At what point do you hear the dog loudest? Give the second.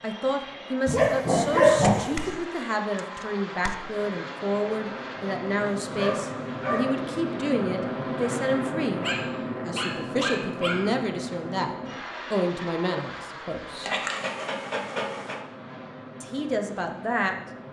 2 s.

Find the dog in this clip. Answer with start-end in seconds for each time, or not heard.
0.8-2.2, 5.8-7.0, 9.0-10.9, 13.8-15.3.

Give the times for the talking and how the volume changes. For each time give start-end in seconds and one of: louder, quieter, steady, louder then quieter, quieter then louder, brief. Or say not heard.
0.0-9.1 steady
9.7-11.7 brief
12.3-13.9 brief
16.2-17.4 brief.